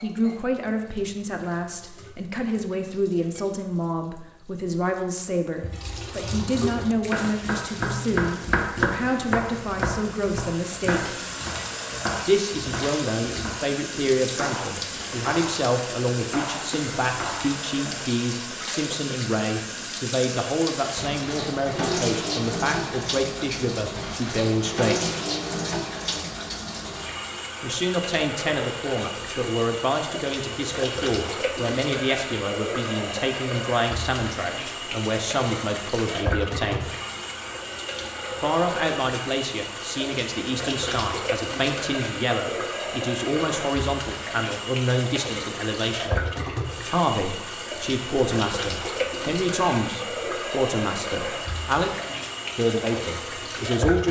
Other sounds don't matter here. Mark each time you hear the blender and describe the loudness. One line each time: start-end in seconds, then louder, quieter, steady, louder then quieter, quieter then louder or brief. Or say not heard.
not heard.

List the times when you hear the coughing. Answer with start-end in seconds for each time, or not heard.
not heard.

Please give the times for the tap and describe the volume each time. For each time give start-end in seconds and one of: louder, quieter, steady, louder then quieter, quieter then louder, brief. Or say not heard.
0.0-54.0 louder.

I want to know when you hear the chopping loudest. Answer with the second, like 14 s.
9 s.